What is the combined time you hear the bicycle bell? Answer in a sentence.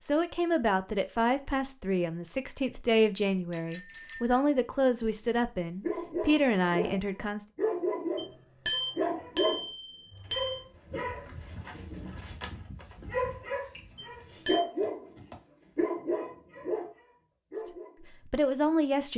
You can hear the bicycle bell for 4 seconds altogether.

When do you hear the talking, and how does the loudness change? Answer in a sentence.
The talking can be heard from 0.0 to 7.5 s, at a steady volume; and briefly from 17.6 to 19.1 s.